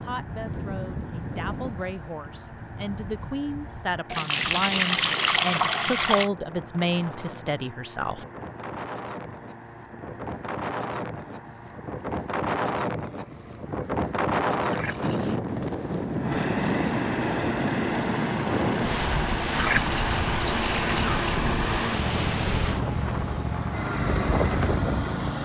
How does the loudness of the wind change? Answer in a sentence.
The loudness of the wind goes up.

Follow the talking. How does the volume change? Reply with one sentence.
The volume of the talking goes up.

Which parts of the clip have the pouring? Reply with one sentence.
The pouring can be heard from 4.1 to 6.3 s, from 14.7 to 15.4 s and from 19.5 to 21.4 s.